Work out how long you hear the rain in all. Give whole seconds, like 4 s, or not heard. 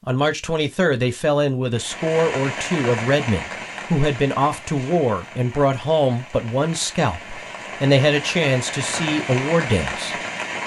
9 s.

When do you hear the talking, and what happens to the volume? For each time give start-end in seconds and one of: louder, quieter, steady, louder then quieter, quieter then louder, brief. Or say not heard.
0.1-10.2 steady.